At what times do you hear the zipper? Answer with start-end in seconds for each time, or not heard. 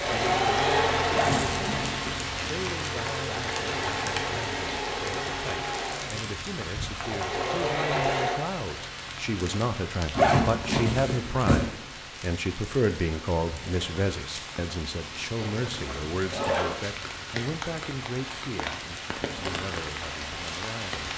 1.1-2.5, 10.2-11.7, 15.3-16.8.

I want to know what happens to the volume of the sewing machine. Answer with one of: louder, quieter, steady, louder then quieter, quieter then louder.
quieter then louder.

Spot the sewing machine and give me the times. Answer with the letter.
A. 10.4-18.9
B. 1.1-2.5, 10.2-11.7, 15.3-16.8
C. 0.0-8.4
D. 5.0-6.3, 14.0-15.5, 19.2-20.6
C.